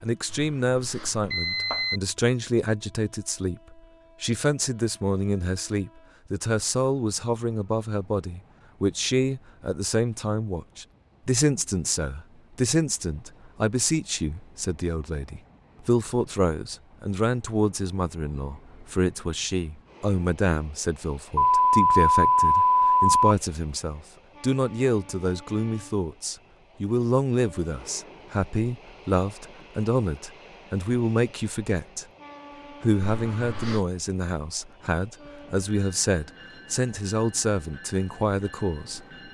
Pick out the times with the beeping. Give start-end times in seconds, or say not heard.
0.3-2.0, 21.4-23.3, 33.0-33.8.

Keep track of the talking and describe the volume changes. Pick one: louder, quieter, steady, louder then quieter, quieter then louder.
steady.